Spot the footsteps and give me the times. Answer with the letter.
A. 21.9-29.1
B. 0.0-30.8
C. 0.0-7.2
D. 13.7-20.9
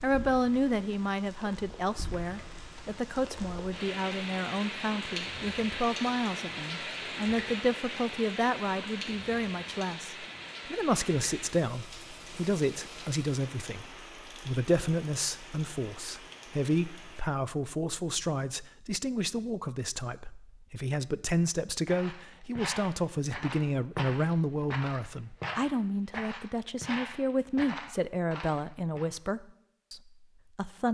A.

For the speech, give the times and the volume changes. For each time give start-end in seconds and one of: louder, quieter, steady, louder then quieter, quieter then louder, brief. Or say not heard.
0.0-30.8 steady.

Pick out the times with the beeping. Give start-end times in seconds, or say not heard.
not heard.